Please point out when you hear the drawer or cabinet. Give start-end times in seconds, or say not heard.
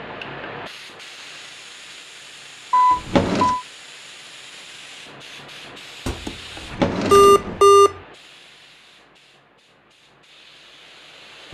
2.9-3.5, 6.5-7.7.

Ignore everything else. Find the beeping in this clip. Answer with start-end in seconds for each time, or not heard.
2.7-3.6, 6.0-8.0.